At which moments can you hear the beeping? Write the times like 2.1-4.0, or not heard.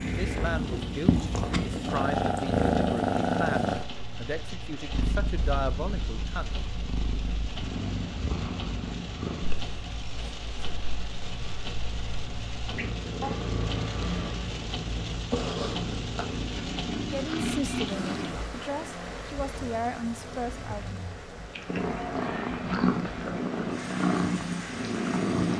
13.2-14.5.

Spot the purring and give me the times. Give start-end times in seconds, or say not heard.
0.0-18.4, 21.6-25.5.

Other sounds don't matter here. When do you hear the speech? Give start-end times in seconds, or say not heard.
0.0-6.6, 17.1-21.0.